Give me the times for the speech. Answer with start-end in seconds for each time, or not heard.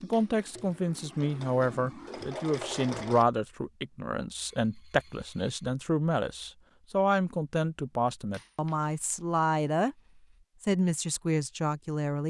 0.0-9.9, 10.6-12.2.